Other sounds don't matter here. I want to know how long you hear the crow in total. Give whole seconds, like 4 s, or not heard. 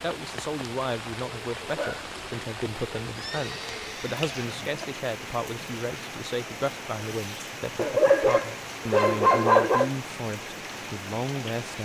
not heard.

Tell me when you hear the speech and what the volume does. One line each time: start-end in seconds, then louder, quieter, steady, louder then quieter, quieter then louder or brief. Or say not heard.
0.0-11.8 steady.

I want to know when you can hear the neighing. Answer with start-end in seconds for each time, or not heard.
3.1-4.8.